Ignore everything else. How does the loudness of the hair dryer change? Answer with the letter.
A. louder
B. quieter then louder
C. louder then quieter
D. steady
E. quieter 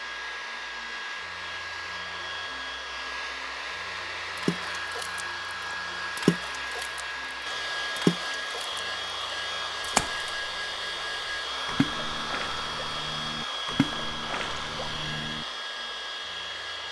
D.